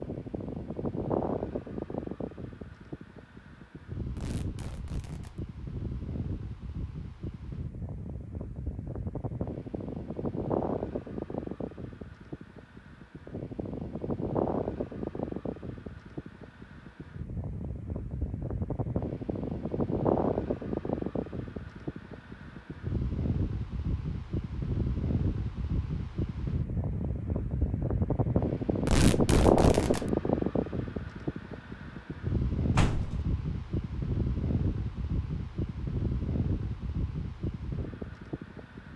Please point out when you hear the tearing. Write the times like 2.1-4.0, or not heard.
4.2-5.4, 28.9-30.1.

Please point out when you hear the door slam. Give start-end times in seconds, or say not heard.
32.8-33.2.